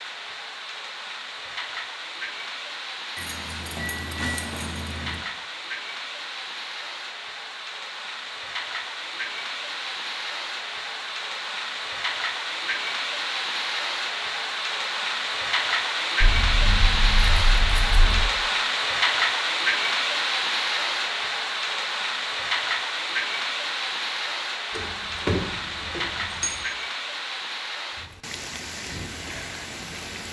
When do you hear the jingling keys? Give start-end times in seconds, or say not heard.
3.1-5.2, 16.2-18.2, 24.7-26.6.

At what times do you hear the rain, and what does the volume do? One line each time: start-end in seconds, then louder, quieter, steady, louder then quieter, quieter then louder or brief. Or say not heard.
0.0-30.2 louder then quieter.